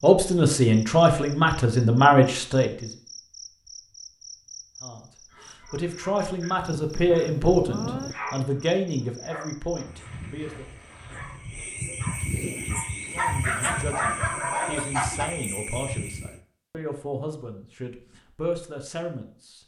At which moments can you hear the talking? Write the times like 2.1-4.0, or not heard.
0.0-2.9, 4.8-10.7, 13.1-19.6.